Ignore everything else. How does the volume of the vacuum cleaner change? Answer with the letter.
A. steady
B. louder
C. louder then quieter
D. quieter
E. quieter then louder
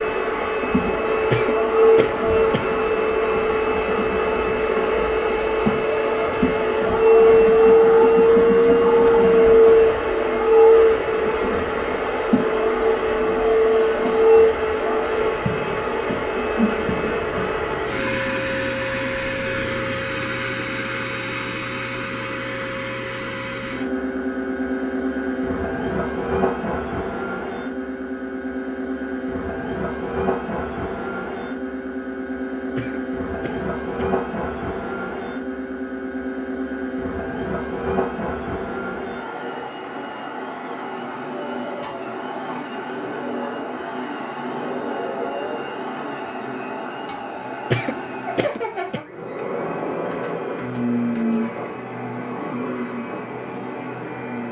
D.